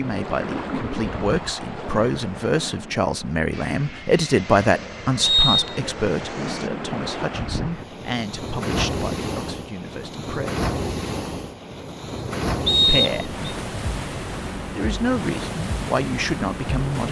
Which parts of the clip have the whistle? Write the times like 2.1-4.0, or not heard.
5.2-5.8, 12.7-13.6.